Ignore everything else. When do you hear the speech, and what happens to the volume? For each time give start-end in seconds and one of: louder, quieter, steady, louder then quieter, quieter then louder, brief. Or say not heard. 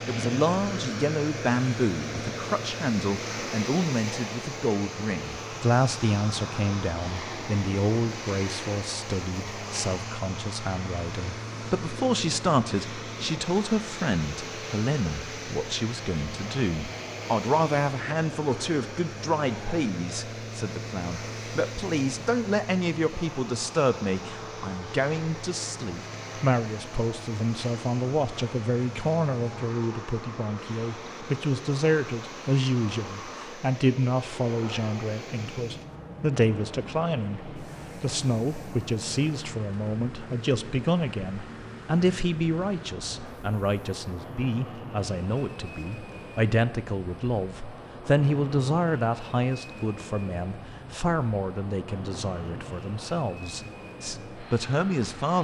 0.1-55.3 steady.